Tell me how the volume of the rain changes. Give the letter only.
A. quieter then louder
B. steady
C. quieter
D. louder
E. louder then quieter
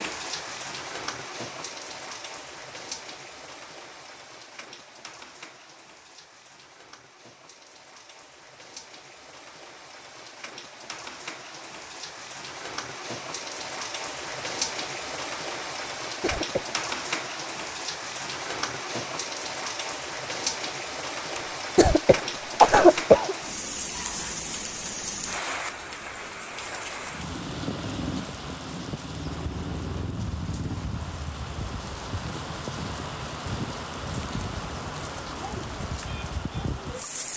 D.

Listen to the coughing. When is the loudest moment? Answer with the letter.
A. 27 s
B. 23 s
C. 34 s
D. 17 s
B.